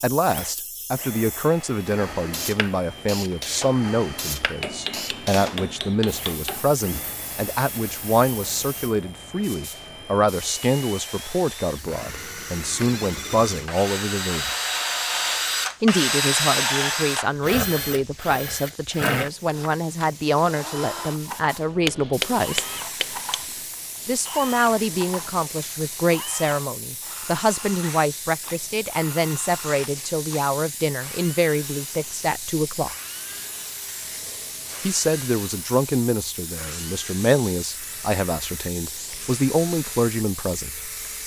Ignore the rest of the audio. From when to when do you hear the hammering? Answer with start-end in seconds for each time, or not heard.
4.6-6.7, 21.9-23.7.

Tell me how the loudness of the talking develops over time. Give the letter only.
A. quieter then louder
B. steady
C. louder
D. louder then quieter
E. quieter
B.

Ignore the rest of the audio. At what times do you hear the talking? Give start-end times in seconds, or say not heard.
0.0-14.6, 15.8-22.6, 24.1-33.0, 34.8-40.8.